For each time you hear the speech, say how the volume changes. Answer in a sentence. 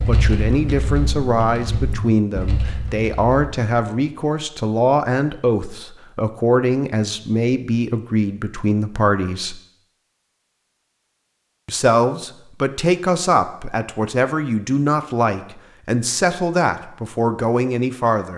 The speech can be heard from 0.1 to 9.6 s, at a steady volume; and from 11.7 to 18.3 s, at a steady volume.